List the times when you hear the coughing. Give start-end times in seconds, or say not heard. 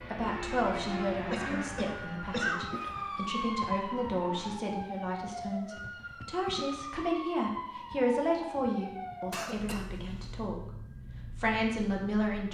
1.3-2.6, 9.3-10.3.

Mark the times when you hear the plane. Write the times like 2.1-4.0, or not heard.
0.0-4.6.